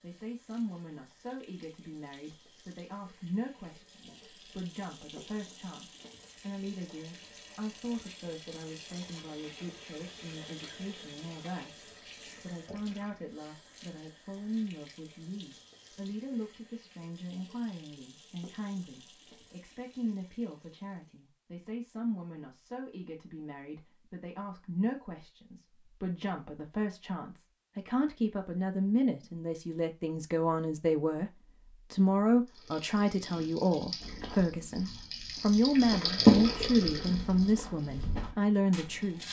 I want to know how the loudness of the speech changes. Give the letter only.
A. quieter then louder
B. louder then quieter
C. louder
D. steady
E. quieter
C.